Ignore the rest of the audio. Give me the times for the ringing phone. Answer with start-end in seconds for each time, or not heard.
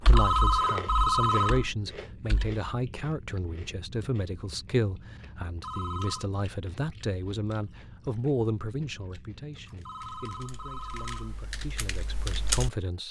0.1-1.7, 5.6-6.2, 9.8-11.4.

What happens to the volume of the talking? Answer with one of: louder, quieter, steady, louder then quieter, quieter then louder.
quieter.